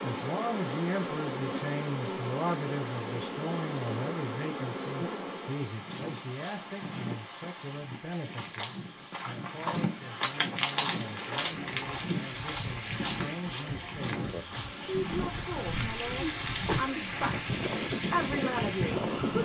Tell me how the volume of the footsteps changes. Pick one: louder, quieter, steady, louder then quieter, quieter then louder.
louder then quieter.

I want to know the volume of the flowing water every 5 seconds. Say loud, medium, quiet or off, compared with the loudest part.
medium, medium, medium, loud.